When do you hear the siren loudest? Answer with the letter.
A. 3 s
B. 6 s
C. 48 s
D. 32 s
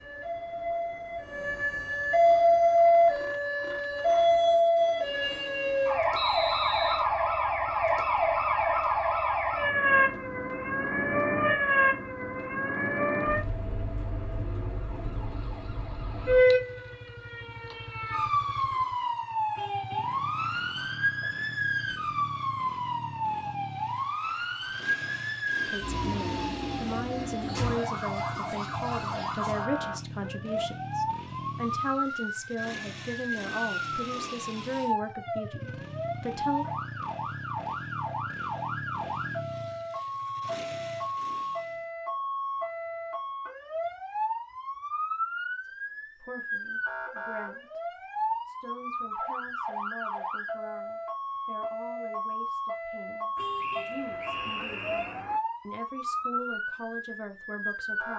A.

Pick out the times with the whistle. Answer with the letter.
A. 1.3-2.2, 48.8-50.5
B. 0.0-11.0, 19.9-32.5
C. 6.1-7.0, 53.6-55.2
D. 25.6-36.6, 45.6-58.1
C.